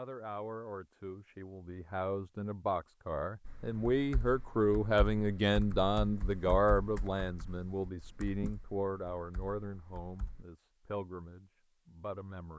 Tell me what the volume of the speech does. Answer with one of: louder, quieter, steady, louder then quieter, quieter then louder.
louder then quieter.